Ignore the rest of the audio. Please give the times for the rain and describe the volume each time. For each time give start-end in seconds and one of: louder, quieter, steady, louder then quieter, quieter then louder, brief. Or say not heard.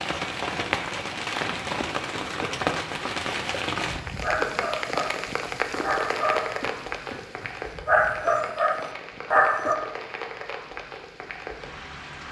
0.0-12.2 quieter.